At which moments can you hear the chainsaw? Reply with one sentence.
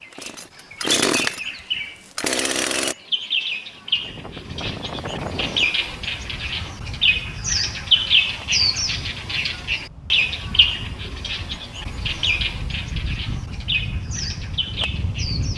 You can hear the chainsaw from 0.1 to 3.0 s.